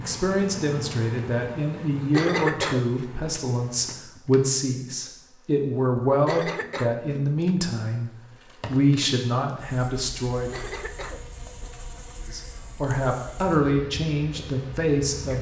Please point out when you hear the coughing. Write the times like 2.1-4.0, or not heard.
2.1-3.4, 6.2-7.5, 10.5-11.8.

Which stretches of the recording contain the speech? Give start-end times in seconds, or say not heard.
0.0-10.7, 12.3-15.3.